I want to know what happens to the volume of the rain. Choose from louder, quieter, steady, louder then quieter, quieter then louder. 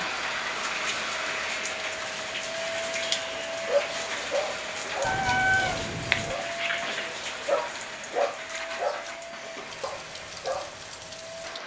quieter.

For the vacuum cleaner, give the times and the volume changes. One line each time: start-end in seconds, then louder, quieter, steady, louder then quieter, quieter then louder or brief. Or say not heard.
0.0-11.6 quieter.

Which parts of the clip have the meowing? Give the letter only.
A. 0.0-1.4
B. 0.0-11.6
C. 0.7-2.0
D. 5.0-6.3
D.